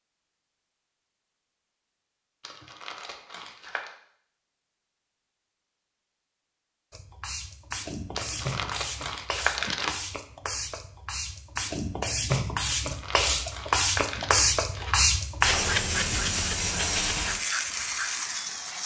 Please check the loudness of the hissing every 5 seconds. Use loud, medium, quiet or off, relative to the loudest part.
off, medium, loud, loud.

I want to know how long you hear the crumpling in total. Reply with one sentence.
The crumpling can be heard for 6 seconds in total.